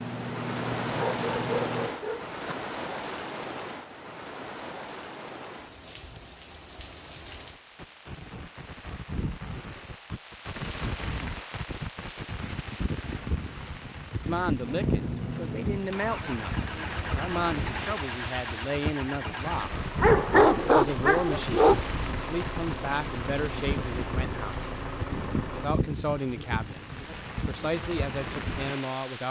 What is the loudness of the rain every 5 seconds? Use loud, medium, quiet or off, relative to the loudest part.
loud, medium, loud, loud, loud, loud.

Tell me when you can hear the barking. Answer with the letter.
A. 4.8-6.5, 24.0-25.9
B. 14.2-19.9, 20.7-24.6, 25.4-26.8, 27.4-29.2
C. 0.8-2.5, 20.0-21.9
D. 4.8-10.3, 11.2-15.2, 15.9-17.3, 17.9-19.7
C.